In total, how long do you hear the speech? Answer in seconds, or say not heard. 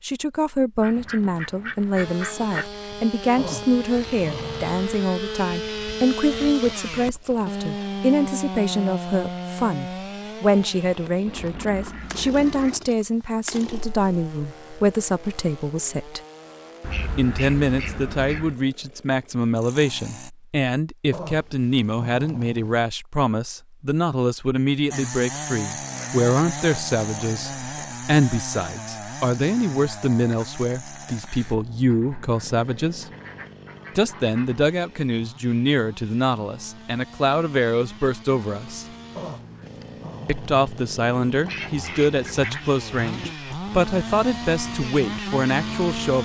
43 s.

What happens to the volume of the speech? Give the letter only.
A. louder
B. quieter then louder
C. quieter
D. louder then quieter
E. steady
E.